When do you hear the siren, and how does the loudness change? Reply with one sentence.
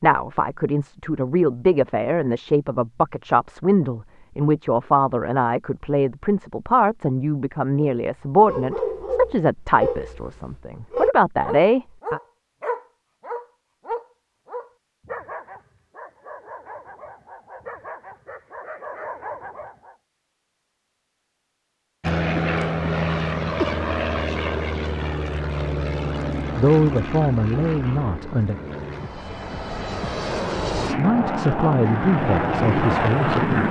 The siren can't be heard in this clip.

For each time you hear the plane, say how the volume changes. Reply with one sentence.
The plane can be heard from 22.0 to 33.6 s, getting quieter then louder.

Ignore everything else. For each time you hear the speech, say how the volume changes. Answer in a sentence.
You can hear the speech from 0.0 to 12.2 s, at a steady volume; briefly from 26.6 to 28.6 s; and briefly from 30.9 to 33.6 s.